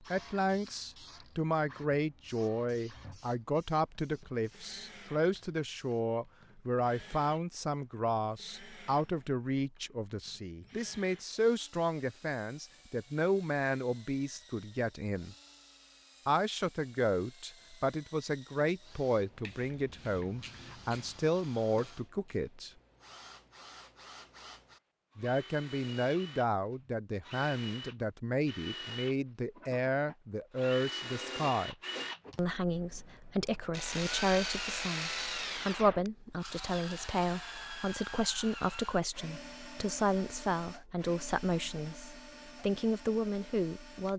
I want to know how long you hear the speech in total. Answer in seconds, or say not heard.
40 s.